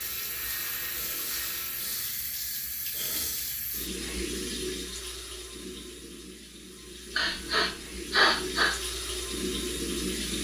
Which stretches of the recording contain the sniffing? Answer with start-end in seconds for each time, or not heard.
0.9-3.6, 7.2-8.8.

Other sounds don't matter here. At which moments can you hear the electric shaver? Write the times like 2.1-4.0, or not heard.
0.0-2.2.